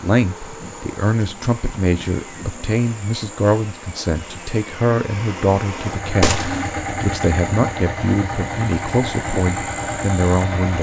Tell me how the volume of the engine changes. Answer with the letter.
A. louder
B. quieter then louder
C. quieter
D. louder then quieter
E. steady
A.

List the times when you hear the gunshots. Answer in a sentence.
The gunshots can be heard from 6.2 to 6.8 s.